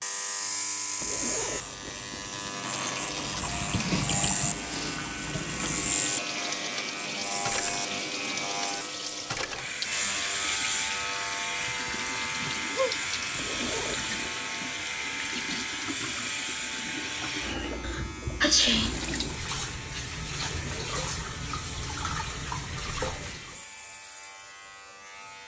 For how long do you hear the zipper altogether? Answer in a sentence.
You can hear the zipper for 3 seconds altogether.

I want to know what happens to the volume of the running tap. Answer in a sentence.
The loudness of the running tap stays about the same.